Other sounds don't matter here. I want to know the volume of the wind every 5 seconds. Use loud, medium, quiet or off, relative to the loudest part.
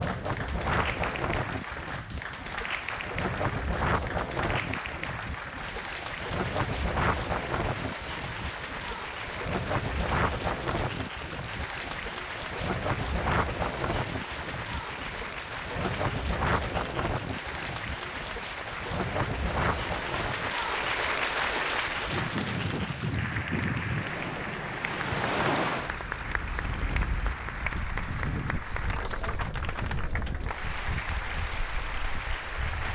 loud, loud, loud, loud, loud, loud, medium.